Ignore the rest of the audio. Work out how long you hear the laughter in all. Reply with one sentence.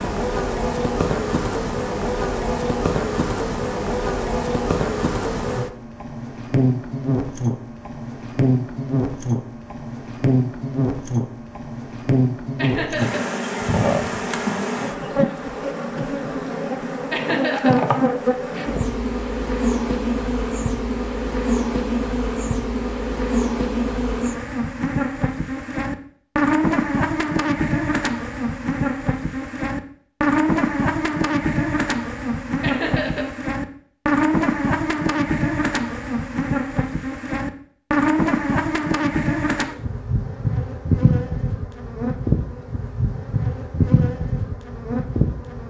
The laughter can be heard for 2 seconds in total.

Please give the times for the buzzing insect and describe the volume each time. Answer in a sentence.
The buzzing insect can be heard from 0.0 to 45.6 s, at a steady volume.